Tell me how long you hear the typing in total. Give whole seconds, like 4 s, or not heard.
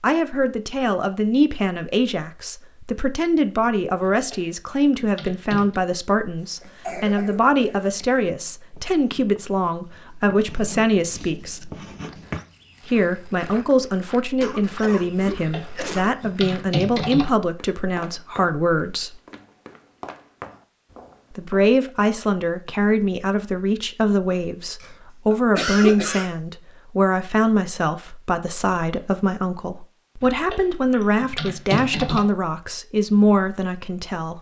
6 s.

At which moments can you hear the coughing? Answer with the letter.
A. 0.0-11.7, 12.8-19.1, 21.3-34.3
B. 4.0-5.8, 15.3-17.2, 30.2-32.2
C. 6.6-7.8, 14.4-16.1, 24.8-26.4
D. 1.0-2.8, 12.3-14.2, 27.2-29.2
C.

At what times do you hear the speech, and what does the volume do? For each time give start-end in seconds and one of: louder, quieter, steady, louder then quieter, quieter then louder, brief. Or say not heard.
0.0-11.7 steady
12.8-19.1 steady
21.3-34.3 steady.